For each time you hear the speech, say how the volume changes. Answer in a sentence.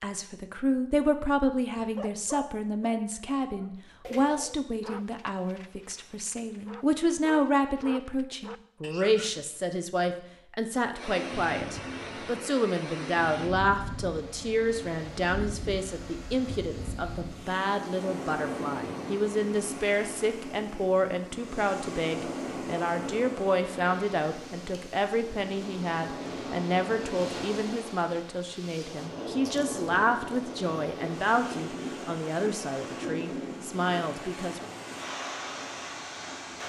The speech can be heard from 0.0 to 34.7 s, at a steady volume.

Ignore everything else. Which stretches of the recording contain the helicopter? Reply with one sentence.
You can't hear the helicopter here.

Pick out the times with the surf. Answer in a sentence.
The surf can be heard from 10.9 to 36.6 s.